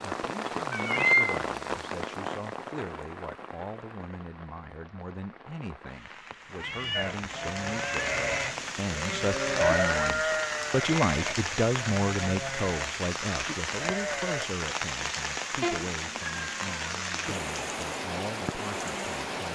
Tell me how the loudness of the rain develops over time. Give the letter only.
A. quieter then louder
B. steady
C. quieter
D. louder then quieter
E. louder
A.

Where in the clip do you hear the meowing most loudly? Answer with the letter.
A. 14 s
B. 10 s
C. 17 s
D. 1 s
D.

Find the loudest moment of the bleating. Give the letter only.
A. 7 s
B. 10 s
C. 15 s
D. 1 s
B.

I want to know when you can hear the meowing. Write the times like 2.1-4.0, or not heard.
0.7-1.4, 6.5-8.2, 15.6-17.0.